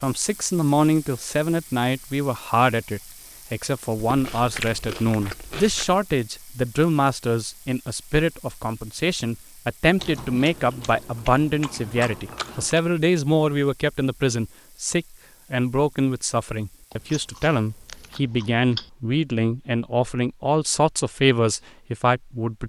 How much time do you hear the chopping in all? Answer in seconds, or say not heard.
not heard.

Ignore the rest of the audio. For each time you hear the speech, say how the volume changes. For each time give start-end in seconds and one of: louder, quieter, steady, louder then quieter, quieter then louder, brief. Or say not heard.
0.0-22.6 steady.